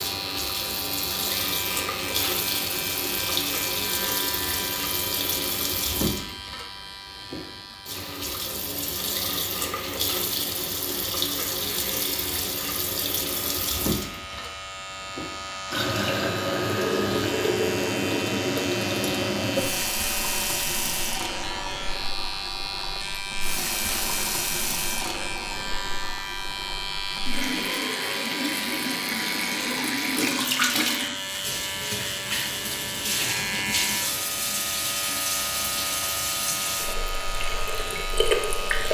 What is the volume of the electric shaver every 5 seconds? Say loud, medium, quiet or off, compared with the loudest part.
loud, medium, medium, loud, loud, loud, loud, loud.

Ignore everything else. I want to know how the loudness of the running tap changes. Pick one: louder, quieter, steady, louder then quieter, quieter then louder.
steady.